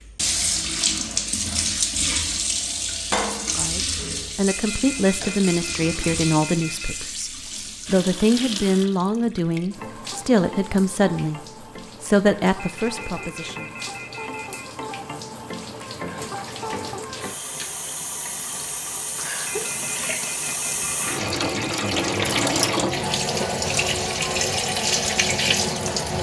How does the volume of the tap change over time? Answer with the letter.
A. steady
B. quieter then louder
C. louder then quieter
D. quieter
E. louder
B.